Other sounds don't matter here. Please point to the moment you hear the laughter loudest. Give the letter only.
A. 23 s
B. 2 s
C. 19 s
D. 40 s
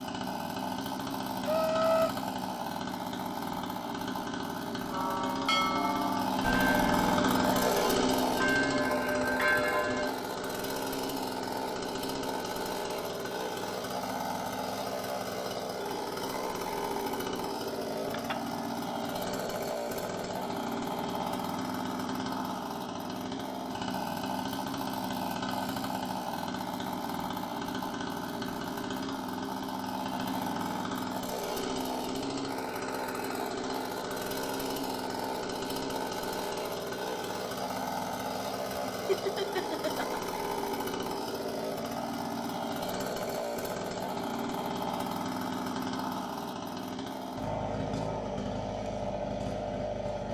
B.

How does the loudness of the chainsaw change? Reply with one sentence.
The volume of the chainsaw stays about the same.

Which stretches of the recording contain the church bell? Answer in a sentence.
The church bell can be heard from 4.9 to 10.1 s.